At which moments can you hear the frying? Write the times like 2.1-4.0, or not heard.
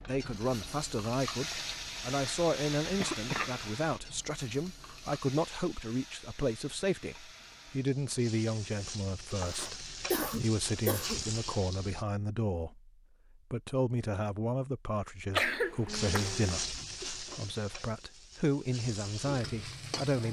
0.0-12.1, 15.8-20.2.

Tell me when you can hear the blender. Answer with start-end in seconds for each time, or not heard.
not heard.